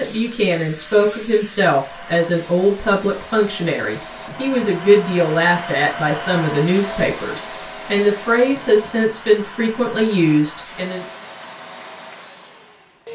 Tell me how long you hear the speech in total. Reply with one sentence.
The speech can be heard for 11 seconds in total.